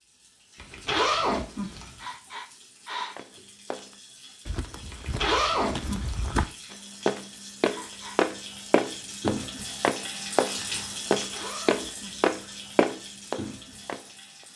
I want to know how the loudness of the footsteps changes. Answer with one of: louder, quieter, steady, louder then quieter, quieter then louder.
louder.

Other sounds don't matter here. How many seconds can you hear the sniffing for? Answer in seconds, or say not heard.
2 s.